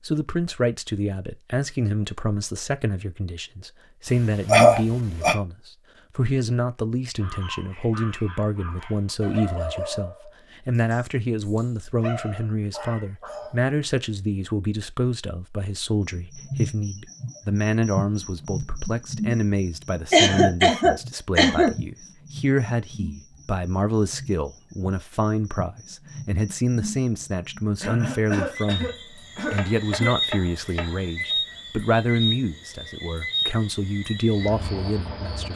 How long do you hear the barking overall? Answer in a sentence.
You can hear the barking for 7 seconds altogether.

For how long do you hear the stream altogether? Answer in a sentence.
The stream can't be heard in this clip.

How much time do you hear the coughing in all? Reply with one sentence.
You can hear the coughing for 5 seconds altogether.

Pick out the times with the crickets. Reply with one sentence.
The crickets can be heard from 16.1 to 35.5 s.